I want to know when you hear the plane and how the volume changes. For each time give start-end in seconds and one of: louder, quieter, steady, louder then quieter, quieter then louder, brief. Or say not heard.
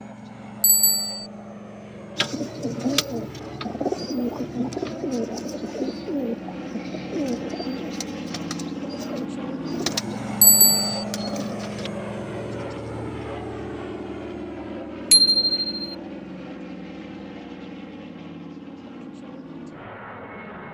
0.0-20.7 louder then quieter.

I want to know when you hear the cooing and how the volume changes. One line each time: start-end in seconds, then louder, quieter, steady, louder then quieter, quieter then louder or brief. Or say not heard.
2.1-11.9 quieter then louder.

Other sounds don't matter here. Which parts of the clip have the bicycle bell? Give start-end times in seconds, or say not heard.
0.6-1.2, 10.4-11.1, 15.1-15.9.